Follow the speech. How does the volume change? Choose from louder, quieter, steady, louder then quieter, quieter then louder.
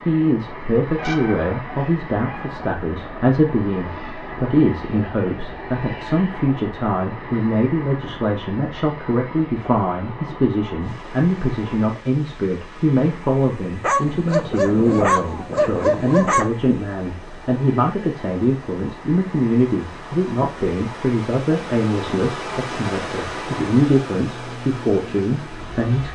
steady.